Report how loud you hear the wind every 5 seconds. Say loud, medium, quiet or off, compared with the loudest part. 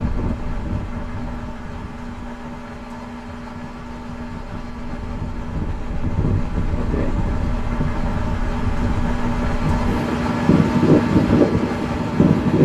quiet, medium, loud.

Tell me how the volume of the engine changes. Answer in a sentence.
The volume of the engine goes up.